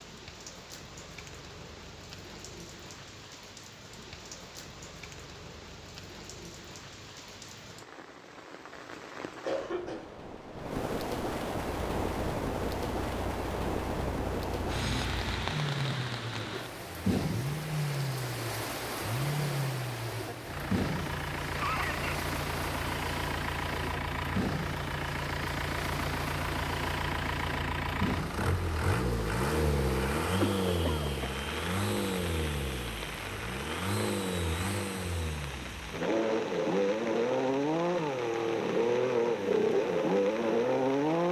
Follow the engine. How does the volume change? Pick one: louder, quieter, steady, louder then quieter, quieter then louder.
louder.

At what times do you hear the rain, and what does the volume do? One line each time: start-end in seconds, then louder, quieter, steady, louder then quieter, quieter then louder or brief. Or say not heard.
0.0-41.2 louder then quieter.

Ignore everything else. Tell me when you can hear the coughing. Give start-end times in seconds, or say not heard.
9.0-10.2, 21.6-22.2, 30.4-31.3.